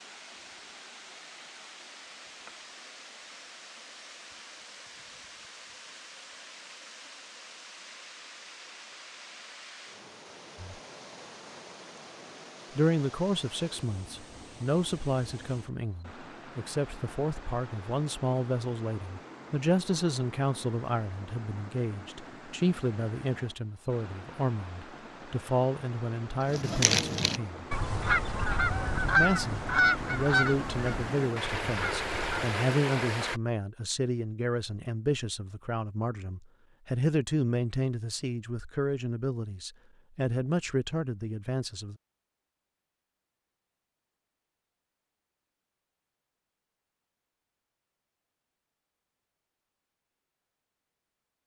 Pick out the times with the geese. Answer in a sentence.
The geese can be heard from 26.5 to 32.5 s.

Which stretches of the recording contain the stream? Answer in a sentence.
The stream can be heard from 0.0 to 33.4 s.